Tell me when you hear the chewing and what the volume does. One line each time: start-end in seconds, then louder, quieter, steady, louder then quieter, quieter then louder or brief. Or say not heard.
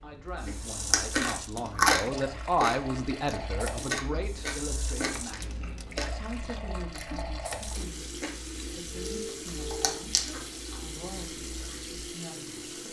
0.3-11.8 quieter then louder.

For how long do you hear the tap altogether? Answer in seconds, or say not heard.
13 s.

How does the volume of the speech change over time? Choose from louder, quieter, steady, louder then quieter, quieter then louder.
quieter.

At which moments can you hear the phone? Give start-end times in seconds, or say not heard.
8.9-10.0.